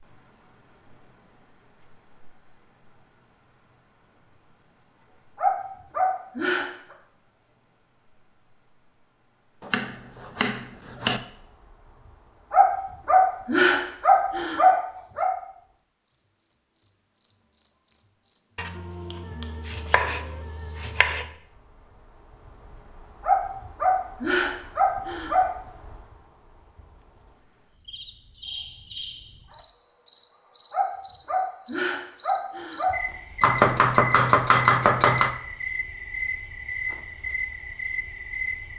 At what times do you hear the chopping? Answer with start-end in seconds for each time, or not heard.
9.6-11.2, 18.6-21.2, 33.4-35.4.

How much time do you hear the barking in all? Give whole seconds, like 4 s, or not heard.
9 s.